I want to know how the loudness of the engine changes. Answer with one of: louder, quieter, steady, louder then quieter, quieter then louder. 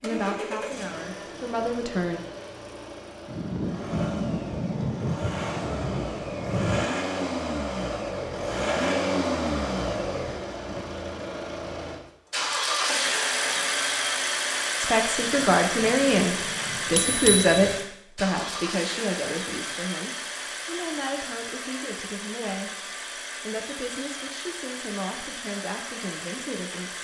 louder then quieter.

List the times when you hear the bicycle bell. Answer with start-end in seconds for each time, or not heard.
16.9-17.8.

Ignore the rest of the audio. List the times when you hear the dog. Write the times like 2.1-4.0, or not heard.
not heard.